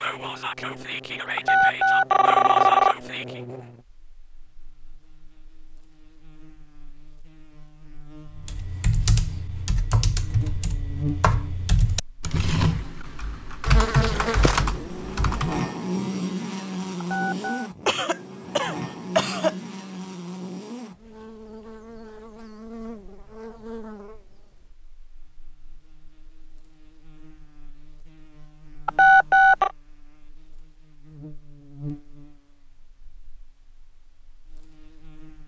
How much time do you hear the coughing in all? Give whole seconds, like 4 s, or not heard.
2 s.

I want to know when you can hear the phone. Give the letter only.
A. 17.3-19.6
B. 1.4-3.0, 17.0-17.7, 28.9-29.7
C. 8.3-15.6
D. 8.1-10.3
B.